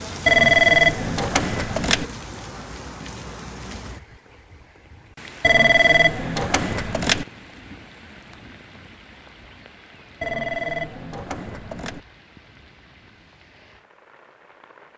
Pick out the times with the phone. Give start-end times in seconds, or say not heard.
0.2-2.0, 5.4-7.2, 10.2-12.0.